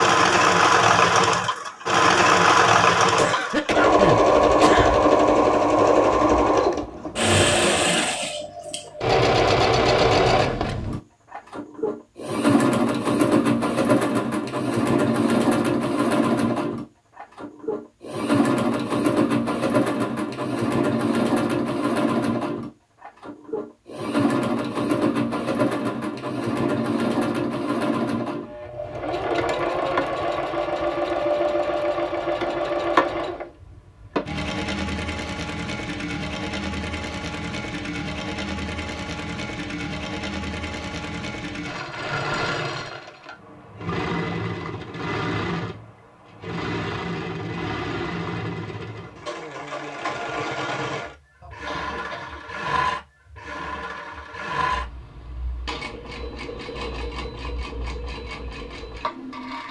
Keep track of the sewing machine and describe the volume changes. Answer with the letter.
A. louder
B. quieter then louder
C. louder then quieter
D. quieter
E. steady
D.